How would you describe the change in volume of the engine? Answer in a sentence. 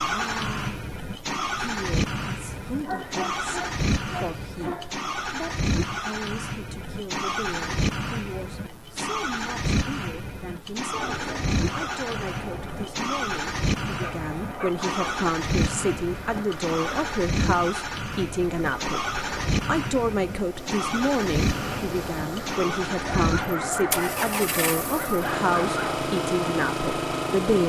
The volume of the engine stays about the same.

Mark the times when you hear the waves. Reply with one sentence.
The waves can be heard from 10.9 to 27.6 s.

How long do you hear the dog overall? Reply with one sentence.
The dog can be heard for 6 seconds in total.